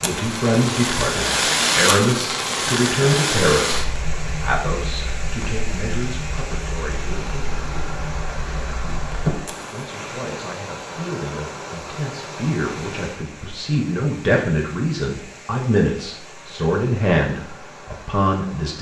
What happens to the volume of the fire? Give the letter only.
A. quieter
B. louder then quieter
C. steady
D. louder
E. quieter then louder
E.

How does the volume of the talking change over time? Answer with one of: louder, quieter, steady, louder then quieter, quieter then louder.
quieter then louder.